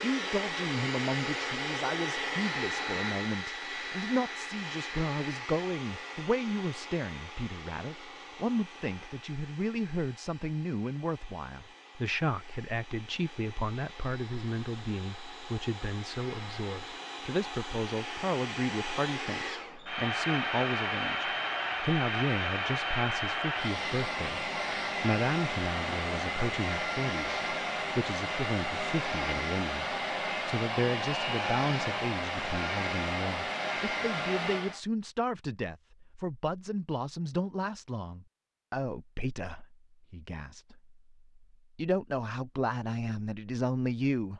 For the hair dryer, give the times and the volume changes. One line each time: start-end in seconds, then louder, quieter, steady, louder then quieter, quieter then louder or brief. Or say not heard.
0.0-34.8 quieter then louder.